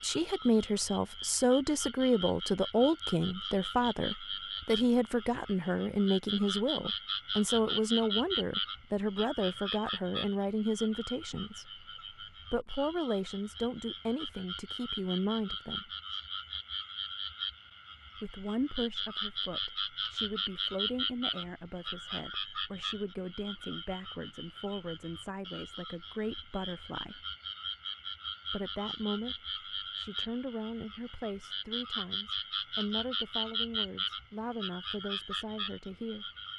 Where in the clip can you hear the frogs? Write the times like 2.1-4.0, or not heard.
0.0-36.5.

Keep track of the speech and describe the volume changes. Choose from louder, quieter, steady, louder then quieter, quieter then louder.
quieter.